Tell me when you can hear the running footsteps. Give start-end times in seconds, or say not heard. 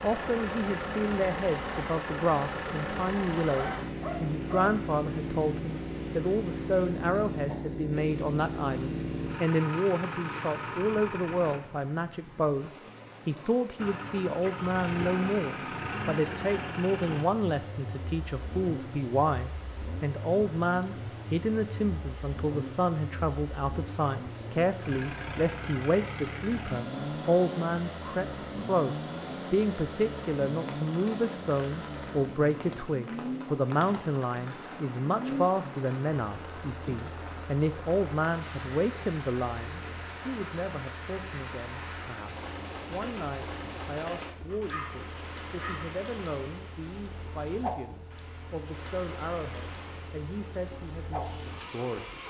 not heard.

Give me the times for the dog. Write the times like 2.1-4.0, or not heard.
3.5-5.0, 44.5-45.9.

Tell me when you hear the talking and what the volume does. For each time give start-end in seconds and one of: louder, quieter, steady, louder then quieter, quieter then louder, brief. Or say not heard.
0.0-52.2 quieter.